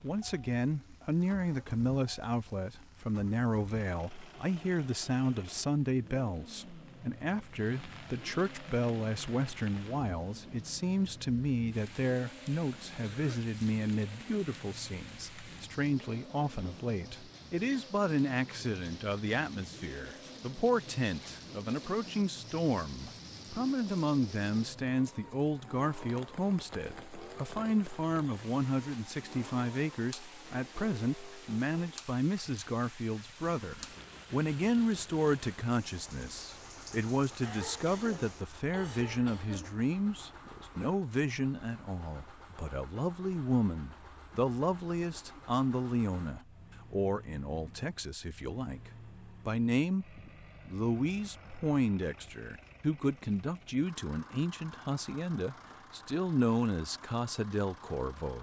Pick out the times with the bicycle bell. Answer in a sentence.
The bicycle bell can't be heard in this clip.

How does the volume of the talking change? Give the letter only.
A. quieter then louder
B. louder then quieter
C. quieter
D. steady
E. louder
D.